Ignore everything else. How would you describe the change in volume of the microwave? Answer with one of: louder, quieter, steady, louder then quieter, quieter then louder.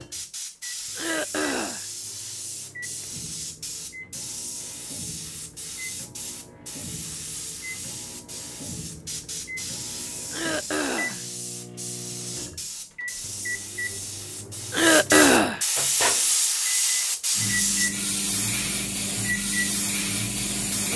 louder.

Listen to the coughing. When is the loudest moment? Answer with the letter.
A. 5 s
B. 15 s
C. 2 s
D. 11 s
B.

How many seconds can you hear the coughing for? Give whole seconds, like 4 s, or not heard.
3 s.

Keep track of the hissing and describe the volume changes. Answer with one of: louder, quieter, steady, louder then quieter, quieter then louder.
louder.